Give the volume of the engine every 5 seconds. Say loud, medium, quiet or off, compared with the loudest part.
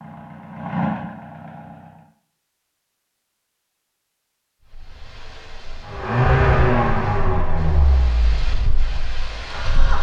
medium, loud.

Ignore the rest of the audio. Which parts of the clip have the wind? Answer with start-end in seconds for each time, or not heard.
4.7-9.9.